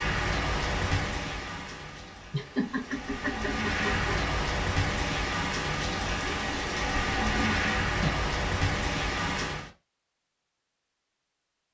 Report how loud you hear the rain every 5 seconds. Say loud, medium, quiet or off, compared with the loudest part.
loud, loud, off.